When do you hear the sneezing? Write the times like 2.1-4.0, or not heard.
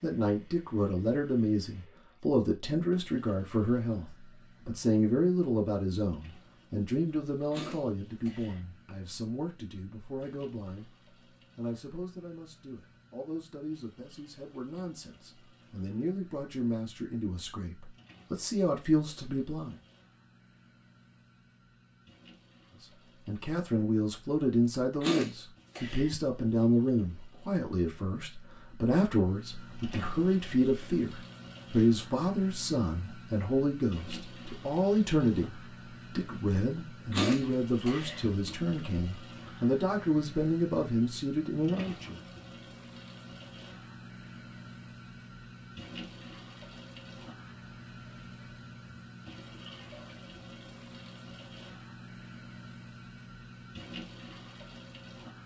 7.5-8.7, 25.0-26.1, 37.1-38.2.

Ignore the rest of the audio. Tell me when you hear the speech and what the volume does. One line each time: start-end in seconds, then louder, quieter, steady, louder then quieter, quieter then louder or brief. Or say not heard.
0.0-10.9 quieter
11.6-19.8 louder
22.8-42.2 steady.